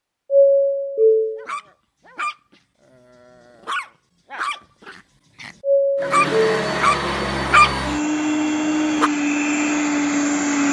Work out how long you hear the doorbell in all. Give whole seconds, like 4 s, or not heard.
2 s.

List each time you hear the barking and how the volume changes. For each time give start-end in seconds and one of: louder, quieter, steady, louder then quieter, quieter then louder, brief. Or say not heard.
1.4-2.4 brief
3.0-9.1 louder then quieter.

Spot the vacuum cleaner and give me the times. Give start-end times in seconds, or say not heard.
6.0-10.6.